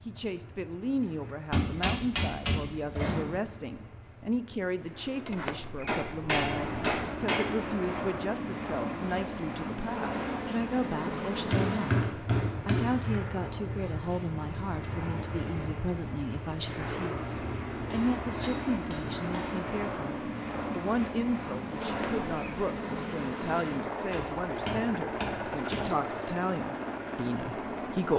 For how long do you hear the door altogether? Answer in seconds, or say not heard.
3 s.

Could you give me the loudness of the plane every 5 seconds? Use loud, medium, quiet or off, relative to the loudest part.
quiet, loud, loud, loud, loud, loud.